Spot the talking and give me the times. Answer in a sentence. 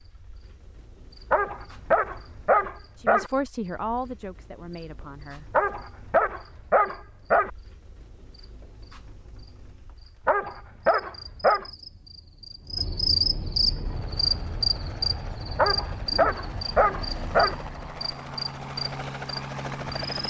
The talking can be heard from 3.0 to 5.5 s.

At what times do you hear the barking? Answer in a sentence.
The barking can be heard from 1.3 to 3.3 s, from 5.5 to 7.5 s, from 10.2 to 11.7 s and from 15.6 to 17.6 s.